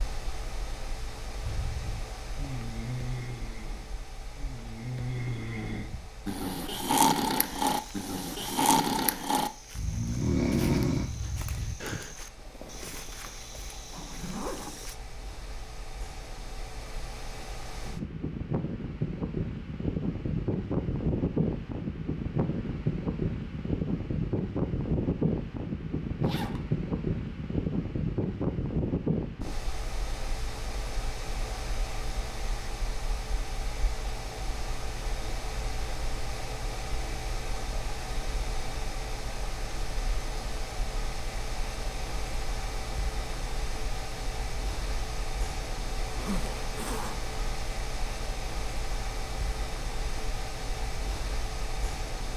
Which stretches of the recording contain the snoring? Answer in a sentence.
You can hear the snoring from 1.4 to 12.2 s.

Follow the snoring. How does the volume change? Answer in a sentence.
The loudness of the snoring goes up.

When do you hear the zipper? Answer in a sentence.
The zipper can be heard from 12.3 to 14.8 s, from 26.2 to 26.6 s and from 46.0 to 47.2 s.